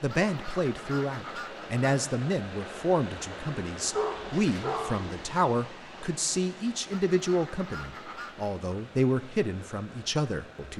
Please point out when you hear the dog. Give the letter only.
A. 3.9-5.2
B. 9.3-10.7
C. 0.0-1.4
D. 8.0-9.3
A.